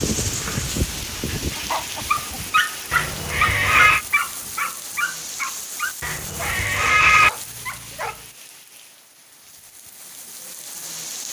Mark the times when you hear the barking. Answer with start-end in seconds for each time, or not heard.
0.0-8.2.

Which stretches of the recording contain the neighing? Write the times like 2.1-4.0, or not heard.
2.9-4.0, 6.0-7.3.